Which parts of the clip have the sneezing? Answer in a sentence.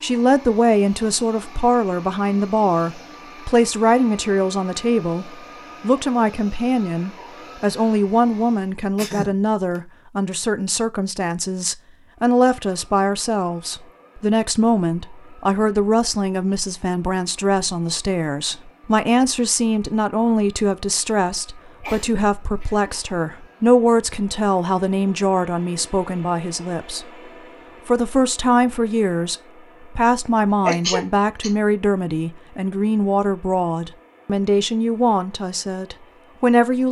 You can hear the sneezing from 8.9 to 9.8 s, from 21.8 to 22.9 s and from 30.6 to 31.5 s.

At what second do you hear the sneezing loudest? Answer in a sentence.
The loudest moment of the sneezing is at 31 seconds.